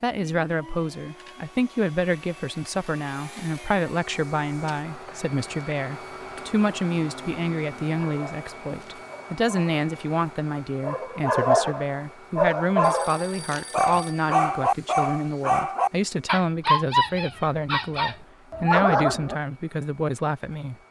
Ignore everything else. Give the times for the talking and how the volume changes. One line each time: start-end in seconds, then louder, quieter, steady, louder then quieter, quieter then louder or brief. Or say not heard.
0.0-20.8 steady.